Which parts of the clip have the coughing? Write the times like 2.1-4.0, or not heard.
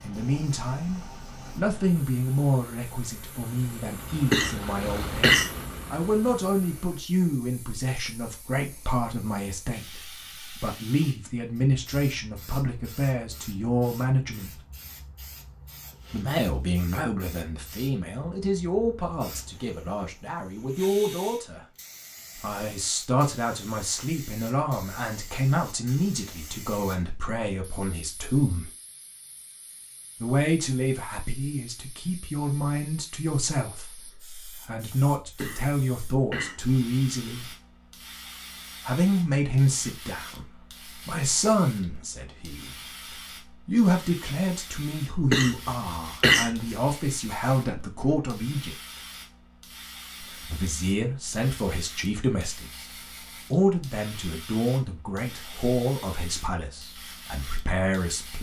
4.1-5.5, 35.2-36.6, 45.1-46.5.